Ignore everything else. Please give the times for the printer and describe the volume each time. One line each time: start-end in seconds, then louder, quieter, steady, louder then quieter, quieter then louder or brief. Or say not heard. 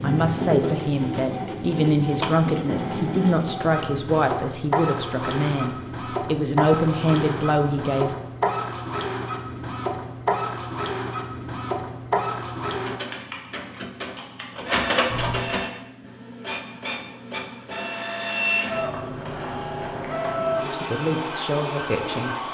0.0-22.4 steady.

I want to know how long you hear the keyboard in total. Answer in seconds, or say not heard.
2 s.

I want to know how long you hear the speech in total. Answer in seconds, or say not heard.
10 s.